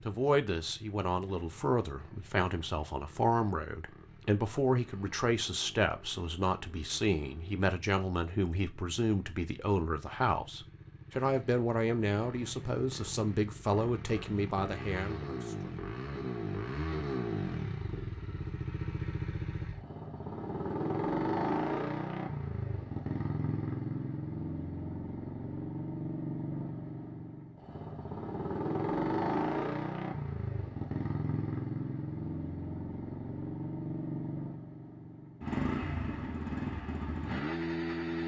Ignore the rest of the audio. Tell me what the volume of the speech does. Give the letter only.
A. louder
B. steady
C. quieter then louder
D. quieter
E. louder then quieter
B.